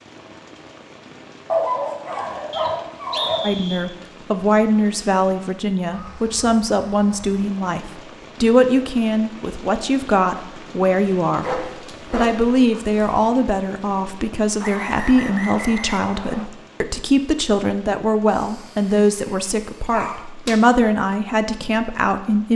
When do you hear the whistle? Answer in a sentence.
The whistle can be heard from 2.5 to 3.9 s and from 14.6 to 16.5 s.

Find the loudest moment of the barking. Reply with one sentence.
The volume of the barking peaks at 2 seconds.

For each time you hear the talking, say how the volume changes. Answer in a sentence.
The talking can be heard from 3.4 to 22.5 s, at a steady volume.